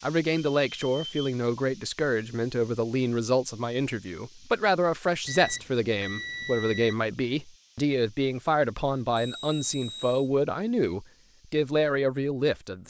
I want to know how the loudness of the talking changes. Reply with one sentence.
The volume of the talking stays about the same.